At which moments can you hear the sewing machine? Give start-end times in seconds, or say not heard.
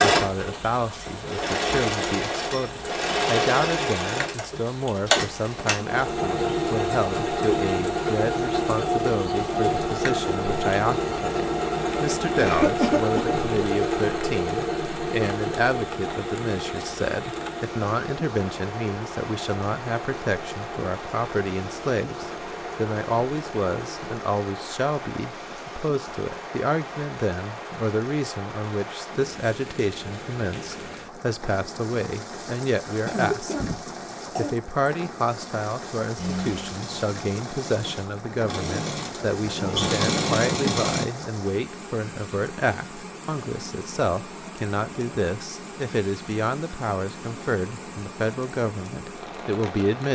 0.0-24.2, 36.1-41.0.